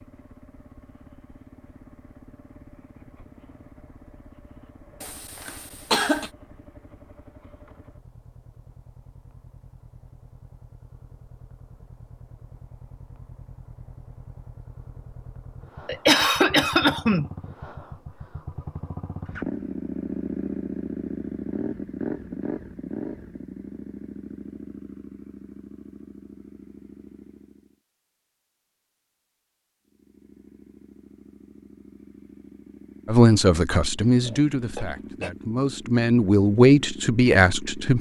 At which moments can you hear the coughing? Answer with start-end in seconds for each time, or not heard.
5.0-6.3, 15.8-17.3, 34.2-35.3.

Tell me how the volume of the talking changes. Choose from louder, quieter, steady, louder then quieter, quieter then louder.
quieter then louder.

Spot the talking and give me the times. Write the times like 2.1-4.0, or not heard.
33.0-37.9.